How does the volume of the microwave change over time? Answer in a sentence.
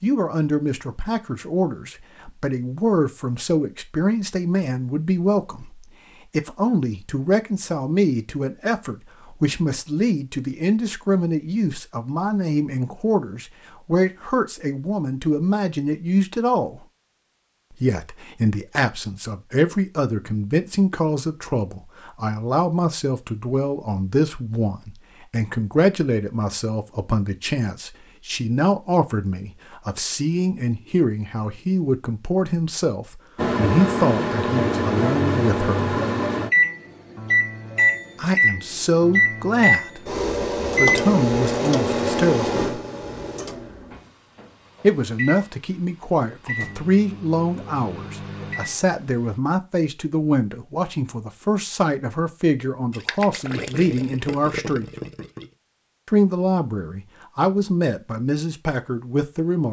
The loudness of the microwave goes down.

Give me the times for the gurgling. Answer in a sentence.
You can hear the gurgling from 52.9 to 55.5 s.